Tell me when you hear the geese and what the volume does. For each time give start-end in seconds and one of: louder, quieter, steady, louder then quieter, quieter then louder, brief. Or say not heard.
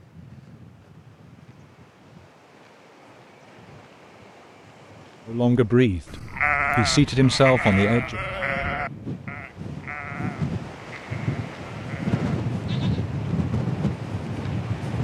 not heard.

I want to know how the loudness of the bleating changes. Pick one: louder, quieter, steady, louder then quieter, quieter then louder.
quieter.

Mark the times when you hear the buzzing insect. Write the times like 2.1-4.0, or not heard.
not heard.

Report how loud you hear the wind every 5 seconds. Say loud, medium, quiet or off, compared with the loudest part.
quiet, medium, loud.